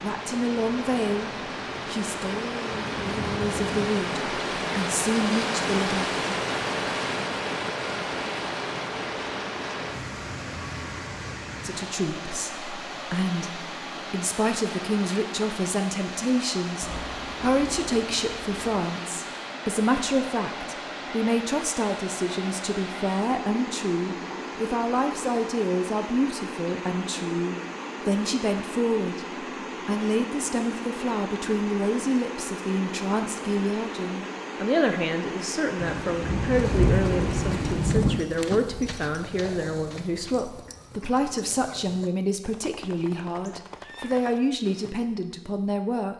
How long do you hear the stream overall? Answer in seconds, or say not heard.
38 s.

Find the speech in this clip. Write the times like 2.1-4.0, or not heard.
0.0-6.1, 11.6-46.1.